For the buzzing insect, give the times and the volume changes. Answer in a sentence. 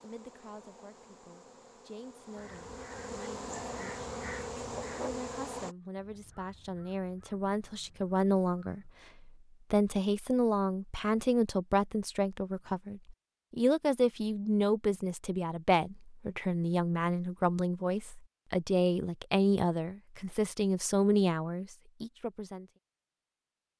You can hear the buzzing insect from 0.0 to 5.8 s, getting louder.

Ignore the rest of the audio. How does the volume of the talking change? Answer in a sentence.
The loudness of the talking goes up.